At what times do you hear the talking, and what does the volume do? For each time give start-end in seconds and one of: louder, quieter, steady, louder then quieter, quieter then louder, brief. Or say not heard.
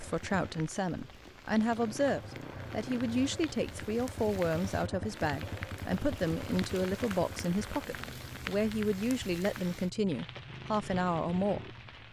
0.0-12.0 steady.